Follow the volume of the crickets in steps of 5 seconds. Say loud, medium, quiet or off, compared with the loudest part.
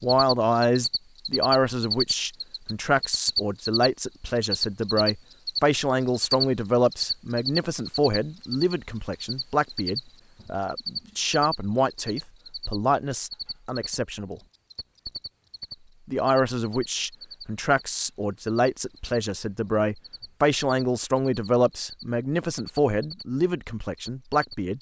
loud, loud, medium, quiet, quiet.